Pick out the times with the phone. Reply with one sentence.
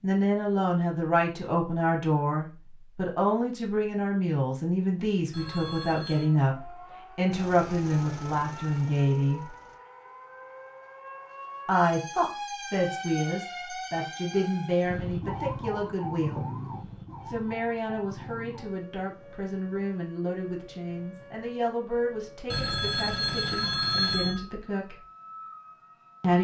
You can hear the phone from 5.3 to 6.3 s and from 22.5 to 24.4 s.